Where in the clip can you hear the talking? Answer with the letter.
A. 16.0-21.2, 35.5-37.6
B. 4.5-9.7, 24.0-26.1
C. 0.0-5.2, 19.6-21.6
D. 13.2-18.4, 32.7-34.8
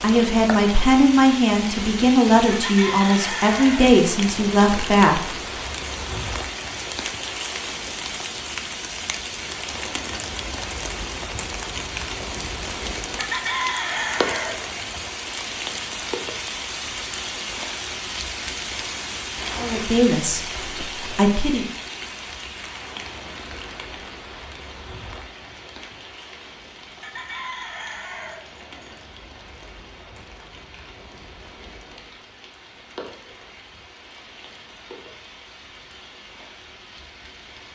C.